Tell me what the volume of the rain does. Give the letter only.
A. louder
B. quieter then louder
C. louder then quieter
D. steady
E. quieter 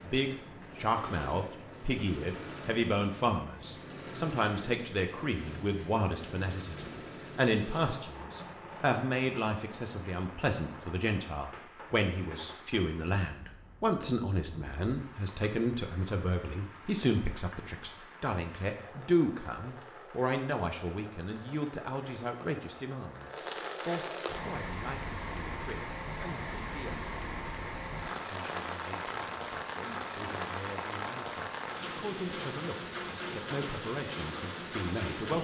A.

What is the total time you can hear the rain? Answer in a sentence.
The rain can be heard for 35 seconds in total.